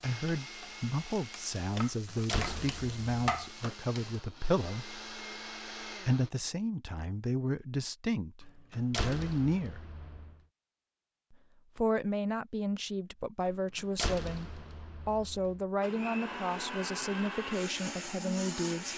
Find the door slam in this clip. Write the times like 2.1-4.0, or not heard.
1.9-3.2, 8.4-10.3, 13.4-15.6.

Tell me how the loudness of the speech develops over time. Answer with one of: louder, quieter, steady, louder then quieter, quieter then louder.
steady.